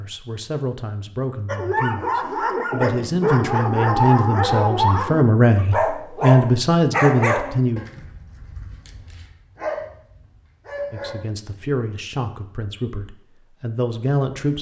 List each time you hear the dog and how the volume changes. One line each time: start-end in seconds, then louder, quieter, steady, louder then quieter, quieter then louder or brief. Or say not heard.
1.4-11.3 quieter.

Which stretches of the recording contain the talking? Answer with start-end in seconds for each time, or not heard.
0.0-7.8, 10.9-14.5.